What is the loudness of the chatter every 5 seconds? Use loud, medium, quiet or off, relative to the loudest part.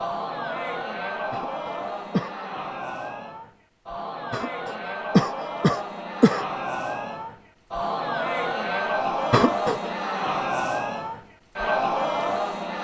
medium, loud, loud.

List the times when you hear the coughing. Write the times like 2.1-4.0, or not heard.
1.3-2.5, 4.3-6.5, 9.3-9.9.